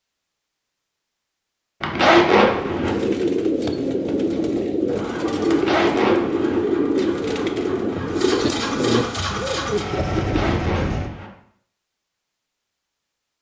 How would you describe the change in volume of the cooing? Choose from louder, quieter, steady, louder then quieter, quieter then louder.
steady.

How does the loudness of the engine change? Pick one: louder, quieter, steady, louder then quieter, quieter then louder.
louder.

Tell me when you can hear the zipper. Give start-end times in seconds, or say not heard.
1.8-3.0, 5.5-6.6, 10.2-11.3.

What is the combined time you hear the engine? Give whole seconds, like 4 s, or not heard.
6 s.